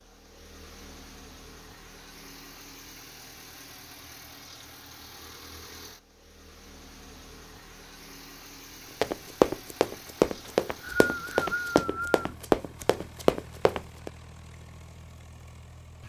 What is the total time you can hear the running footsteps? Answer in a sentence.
You can hear the running footsteps for 5 seconds altogether.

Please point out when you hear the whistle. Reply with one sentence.
You can hear the whistle from 10.4 to 12.3 s.